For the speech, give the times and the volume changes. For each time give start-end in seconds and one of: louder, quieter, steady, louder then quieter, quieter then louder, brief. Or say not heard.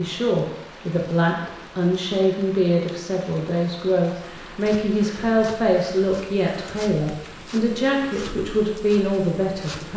0.0-9.9 steady.